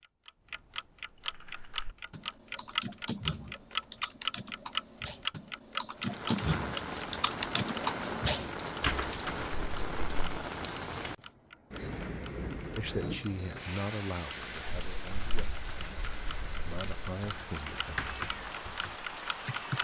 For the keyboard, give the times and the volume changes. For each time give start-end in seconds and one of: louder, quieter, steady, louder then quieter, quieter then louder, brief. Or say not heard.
1.1-10.2 louder
14.4-19.7 louder then quieter.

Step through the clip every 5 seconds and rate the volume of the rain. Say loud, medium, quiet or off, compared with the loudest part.
off, loud, loud, medium.